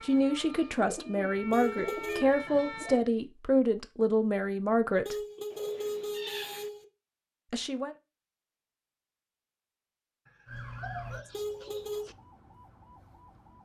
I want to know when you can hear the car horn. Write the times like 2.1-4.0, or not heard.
1.5-2.2, 5.0-6.8, 11.3-12.1.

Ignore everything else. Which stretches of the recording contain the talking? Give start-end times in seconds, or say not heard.
0.0-5.2, 7.5-8.0.